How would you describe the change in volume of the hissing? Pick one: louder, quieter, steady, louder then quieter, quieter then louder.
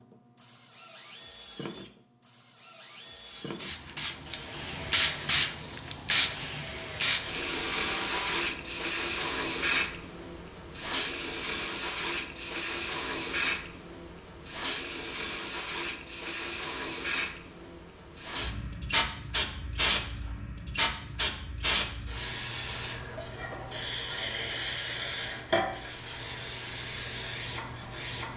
quieter.